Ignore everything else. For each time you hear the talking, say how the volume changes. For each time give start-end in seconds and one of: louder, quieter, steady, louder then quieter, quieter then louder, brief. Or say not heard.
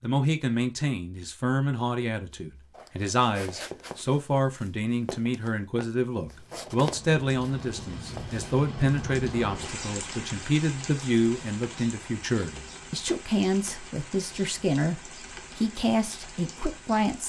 0.0-17.2 steady.